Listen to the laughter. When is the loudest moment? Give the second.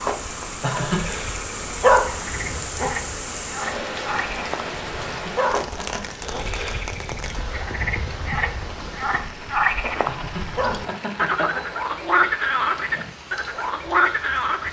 1 s.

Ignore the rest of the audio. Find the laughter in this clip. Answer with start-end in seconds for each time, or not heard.
0.6-1.1, 5.0-6.0, 10.1-11.7.